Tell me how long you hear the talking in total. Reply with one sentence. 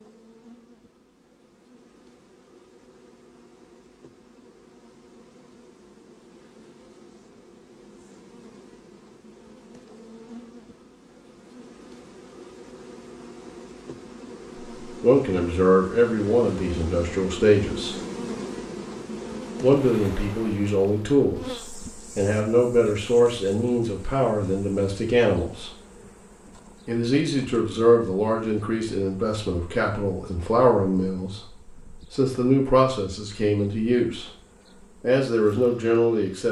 You can hear the talking for 18 seconds altogether.